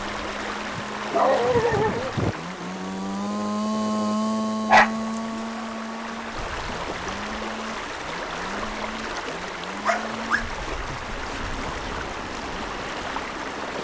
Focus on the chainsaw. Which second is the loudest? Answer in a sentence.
The loudest moment of the chainsaw is at 4 seconds.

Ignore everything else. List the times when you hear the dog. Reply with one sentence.
You can hear the dog from 0.8 to 2.4 s, from 4.7 to 5.7 s and from 9.8 to 11.4 s.